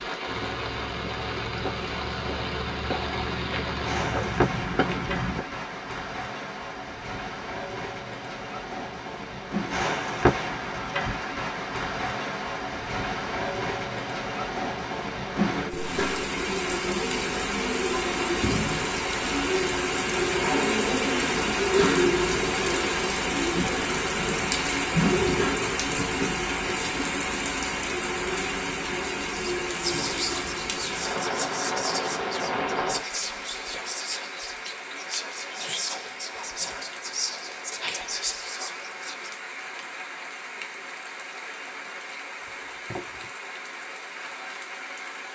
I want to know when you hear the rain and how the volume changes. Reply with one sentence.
You can hear the rain from 0.0 to 45.3 s, getting louder then quieter.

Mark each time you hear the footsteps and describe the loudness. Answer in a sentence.
The footsteps can be heard from 0.2 to 5.4 s, getting louder.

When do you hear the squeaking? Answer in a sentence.
You can hear the squeaking from 42.4 to 43.3 s.